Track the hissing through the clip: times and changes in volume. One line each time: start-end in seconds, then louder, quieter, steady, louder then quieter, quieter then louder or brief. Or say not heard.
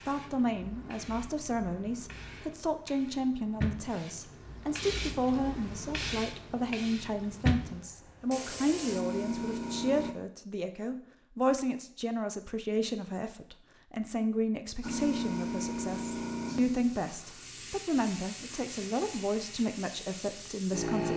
0.0-10.2 louder
14.8-21.1 quieter.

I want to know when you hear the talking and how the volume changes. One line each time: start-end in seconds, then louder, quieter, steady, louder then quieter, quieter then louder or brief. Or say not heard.
0.1-21.1 steady.